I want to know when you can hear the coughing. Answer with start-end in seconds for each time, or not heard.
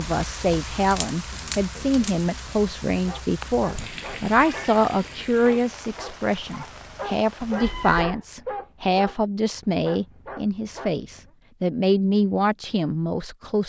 not heard.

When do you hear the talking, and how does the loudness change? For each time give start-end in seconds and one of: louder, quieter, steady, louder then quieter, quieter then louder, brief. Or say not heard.
0.0-13.6 steady.